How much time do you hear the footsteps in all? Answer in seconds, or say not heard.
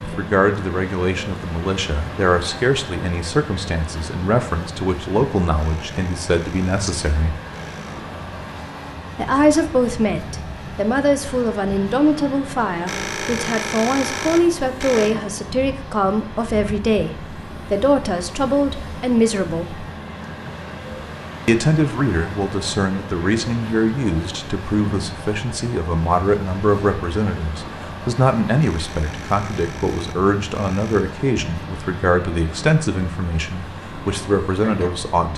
not heard.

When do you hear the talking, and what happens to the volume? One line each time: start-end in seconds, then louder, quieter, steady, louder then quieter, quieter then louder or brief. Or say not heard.
0.0-7.3 steady
9.2-19.9 steady
21.4-35.3 steady.